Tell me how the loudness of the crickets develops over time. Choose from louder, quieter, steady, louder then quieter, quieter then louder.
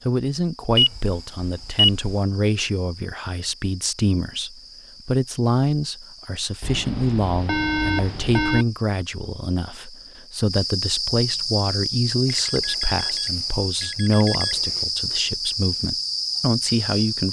louder.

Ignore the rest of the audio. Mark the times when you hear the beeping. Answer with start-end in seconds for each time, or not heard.
0.8-2.1, 6.6-8.7, 12.2-14.8.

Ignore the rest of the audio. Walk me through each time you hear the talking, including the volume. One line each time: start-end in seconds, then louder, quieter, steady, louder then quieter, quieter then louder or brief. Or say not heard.
0.1-17.2 steady.